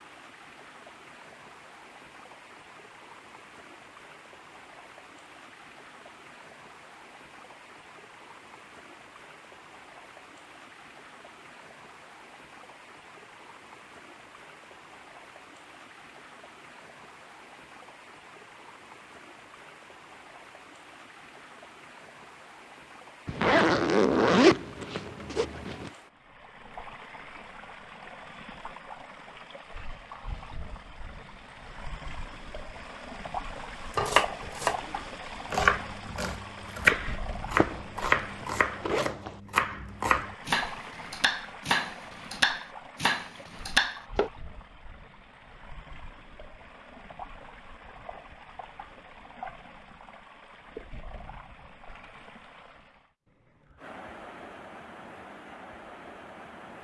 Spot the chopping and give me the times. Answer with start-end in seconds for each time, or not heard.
33.9-44.3.